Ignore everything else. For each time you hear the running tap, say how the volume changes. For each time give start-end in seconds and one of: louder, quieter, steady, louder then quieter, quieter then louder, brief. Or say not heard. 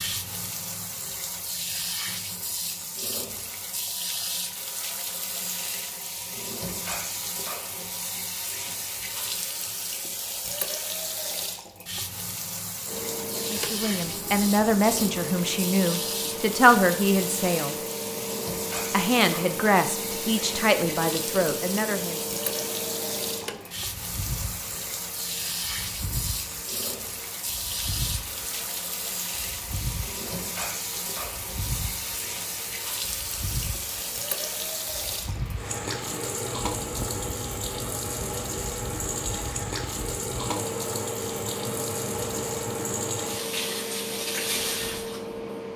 0.0-45.5 steady.